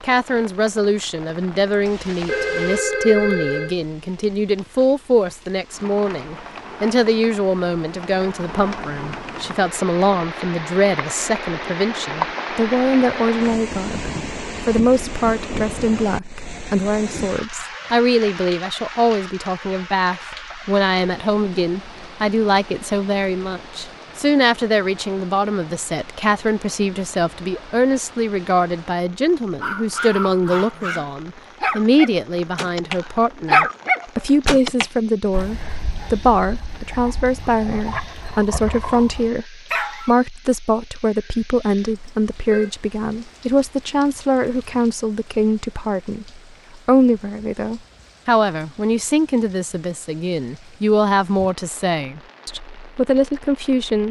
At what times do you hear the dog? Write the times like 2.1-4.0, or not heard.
29.6-40.1.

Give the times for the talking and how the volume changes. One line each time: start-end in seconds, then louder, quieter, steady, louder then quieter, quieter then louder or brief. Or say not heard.
0.0-54.0 steady.